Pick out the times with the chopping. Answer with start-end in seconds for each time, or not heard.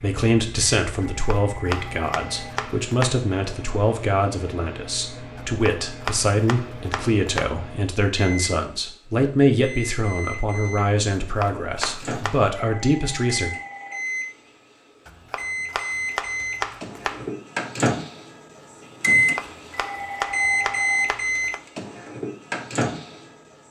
1.1-3.1, 5.3-7.5, 11.2-12.6, 15.1-17.3, 19.1-21.6.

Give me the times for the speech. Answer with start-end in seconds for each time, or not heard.
0.0-13.5.